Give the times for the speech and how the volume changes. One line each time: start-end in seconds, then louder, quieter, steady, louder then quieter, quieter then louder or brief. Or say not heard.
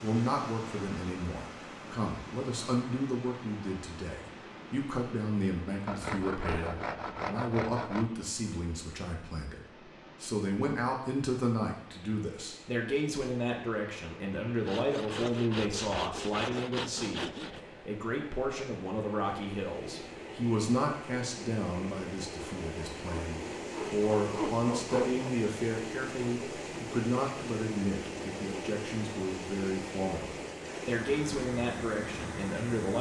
0.0-9.6 steady
10.2-32.9 steady.